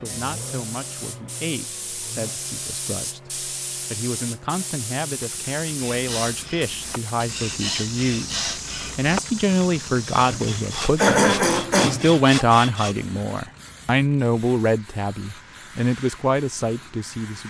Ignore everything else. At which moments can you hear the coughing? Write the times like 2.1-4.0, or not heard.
10.3-12.2.